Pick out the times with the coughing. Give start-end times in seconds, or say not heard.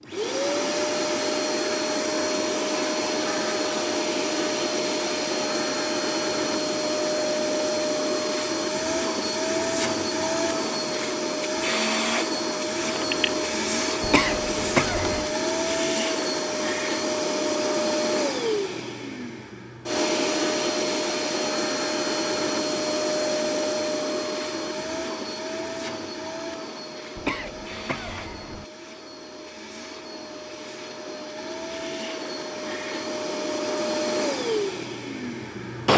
14.0-15.3, 27.1-28.6.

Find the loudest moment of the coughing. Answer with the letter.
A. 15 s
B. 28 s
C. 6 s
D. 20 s
A.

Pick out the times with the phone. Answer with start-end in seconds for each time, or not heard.
12.9-13.4.